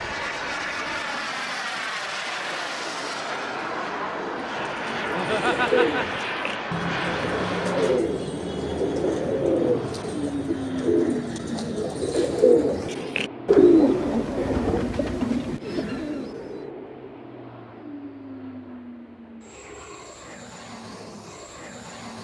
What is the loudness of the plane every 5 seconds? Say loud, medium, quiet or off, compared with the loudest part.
loud, loud, loud, medium, medium.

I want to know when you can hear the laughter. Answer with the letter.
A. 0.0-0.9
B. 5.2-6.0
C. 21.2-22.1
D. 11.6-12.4
B.